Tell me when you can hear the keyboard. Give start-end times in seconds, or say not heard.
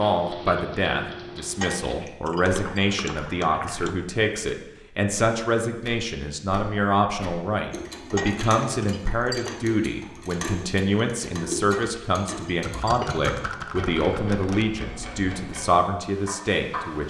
2.4-3.9, 12.6-14.7.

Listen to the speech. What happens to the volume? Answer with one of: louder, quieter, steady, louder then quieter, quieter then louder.
steady.